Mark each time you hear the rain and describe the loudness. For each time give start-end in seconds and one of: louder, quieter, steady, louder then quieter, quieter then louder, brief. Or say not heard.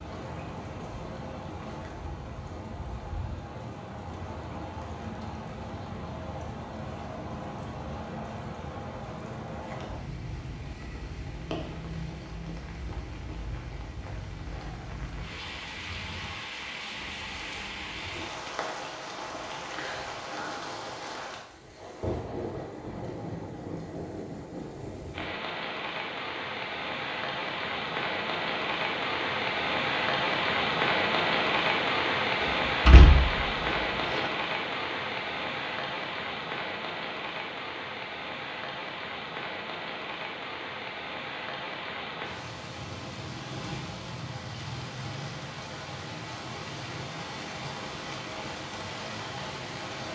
0.0-50.0 louder then quieter.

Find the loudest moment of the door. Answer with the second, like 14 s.
33 s.